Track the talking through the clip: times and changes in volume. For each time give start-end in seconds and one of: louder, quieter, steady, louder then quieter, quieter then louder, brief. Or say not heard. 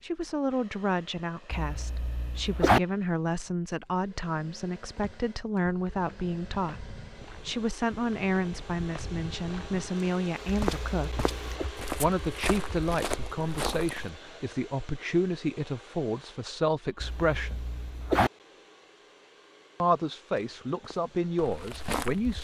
0.0-11.2 steady
11.9-17.6 steady
19.8-22.3 brief.